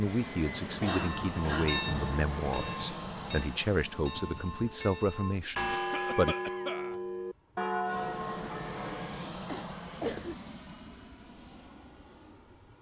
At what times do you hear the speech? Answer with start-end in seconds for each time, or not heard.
0.0-6.3.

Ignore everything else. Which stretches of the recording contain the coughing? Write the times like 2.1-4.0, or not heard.
0.7-1.8, 5.7-7.0, 9.3-10.3.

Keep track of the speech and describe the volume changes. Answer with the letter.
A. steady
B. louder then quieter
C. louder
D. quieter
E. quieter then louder
A.